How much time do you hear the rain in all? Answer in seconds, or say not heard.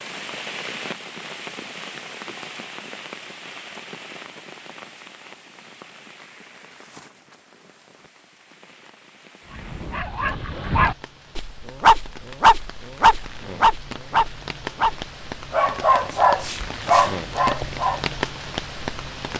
19 s.